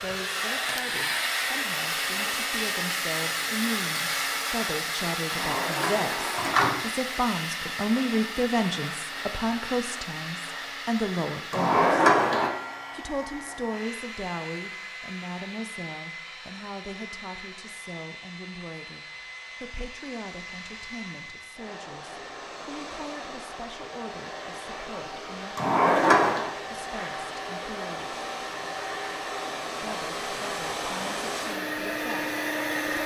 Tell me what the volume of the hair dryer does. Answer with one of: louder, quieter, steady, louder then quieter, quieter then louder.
quieter then louder.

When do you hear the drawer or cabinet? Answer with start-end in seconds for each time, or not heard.
5.3-6.8, 11.5-12.5, 25.6-26.5.